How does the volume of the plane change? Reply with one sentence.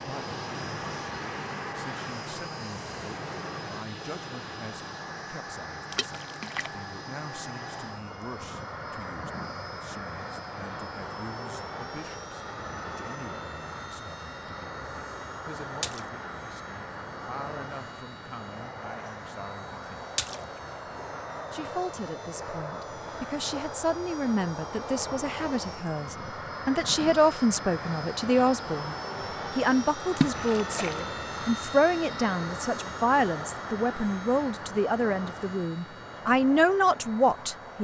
The loudness of the plane stays about the same.